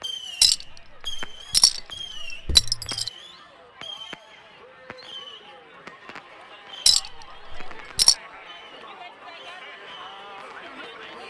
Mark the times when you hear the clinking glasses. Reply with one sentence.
The clinking glasses can be heard from 0.4 to 3.1 s and from 6.8 to 8.2 s.